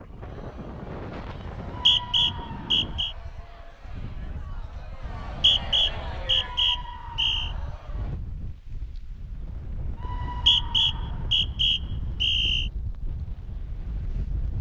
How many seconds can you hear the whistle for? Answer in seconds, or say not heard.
7 s.